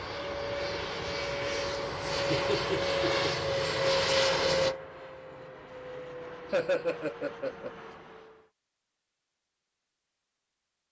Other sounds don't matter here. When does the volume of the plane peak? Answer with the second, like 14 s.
4 s.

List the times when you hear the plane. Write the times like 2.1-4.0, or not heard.
0.0-8.5.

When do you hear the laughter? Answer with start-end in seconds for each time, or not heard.
2.1-3.3, 6.5-7.7.